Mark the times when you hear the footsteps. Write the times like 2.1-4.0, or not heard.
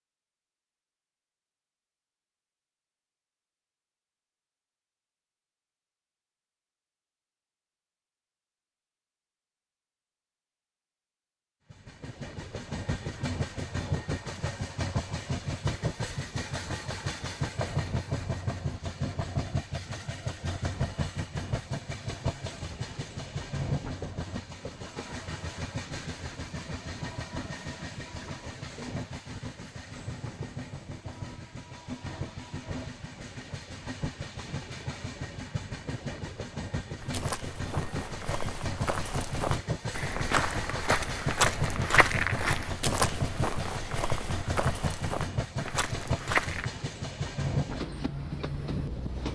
37.0-46.7.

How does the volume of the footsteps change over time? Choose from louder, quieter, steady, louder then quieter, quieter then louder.
louder then quieter.